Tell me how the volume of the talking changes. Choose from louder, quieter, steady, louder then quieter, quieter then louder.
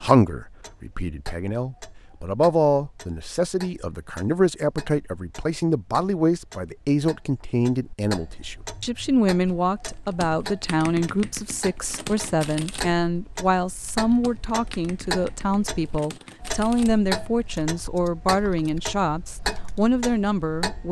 steady.